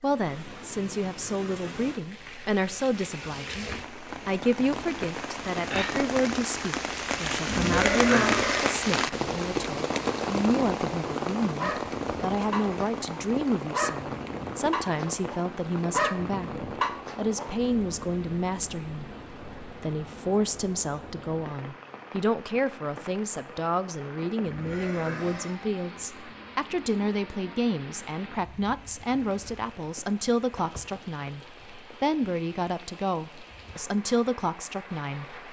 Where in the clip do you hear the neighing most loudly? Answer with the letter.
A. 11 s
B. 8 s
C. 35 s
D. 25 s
B.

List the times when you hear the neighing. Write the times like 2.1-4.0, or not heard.
7.5-8.7, 24.4-25.6.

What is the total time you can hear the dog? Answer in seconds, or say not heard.
6 s.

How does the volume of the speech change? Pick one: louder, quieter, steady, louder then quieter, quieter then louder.
steady.